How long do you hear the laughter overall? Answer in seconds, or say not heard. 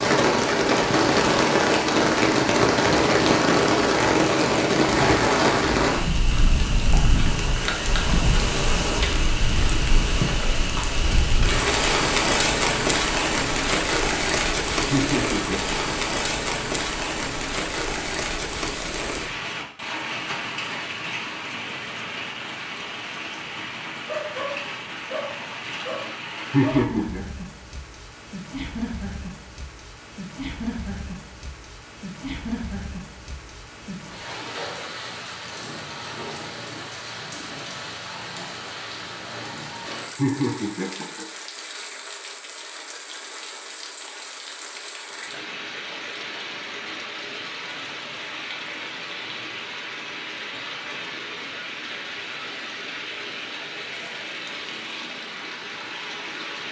3 s.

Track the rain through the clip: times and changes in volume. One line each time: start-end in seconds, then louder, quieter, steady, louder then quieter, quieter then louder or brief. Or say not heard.
0.0-56.6 quieter.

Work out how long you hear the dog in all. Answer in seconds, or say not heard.
3 s.